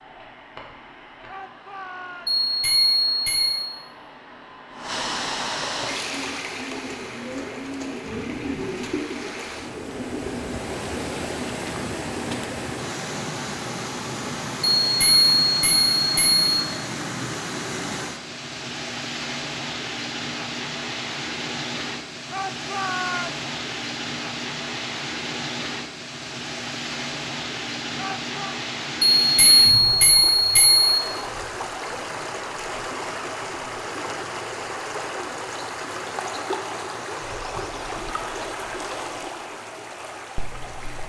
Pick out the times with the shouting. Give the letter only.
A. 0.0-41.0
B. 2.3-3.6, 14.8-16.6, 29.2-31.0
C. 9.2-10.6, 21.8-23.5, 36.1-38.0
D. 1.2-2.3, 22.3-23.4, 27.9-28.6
D.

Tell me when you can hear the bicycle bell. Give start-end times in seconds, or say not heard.
2.3-3.6, 14.8-16.6, 29.2-31.0.